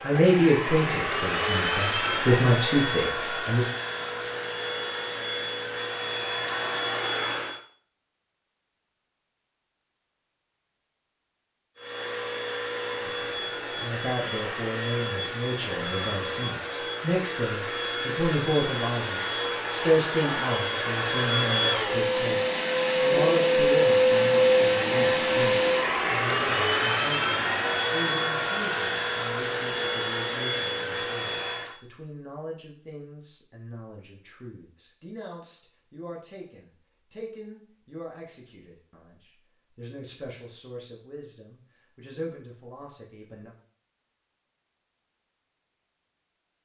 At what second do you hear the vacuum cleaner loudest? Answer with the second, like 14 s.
24 s.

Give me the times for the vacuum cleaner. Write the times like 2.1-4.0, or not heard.
0.0-7.6, 11.8-31.8.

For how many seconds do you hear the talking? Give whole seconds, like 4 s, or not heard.
34 s.